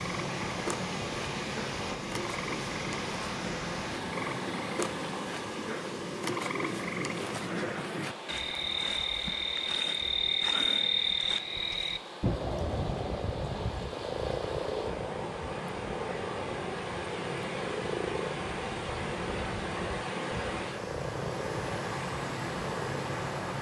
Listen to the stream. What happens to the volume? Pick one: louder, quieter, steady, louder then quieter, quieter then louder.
quieter then louder.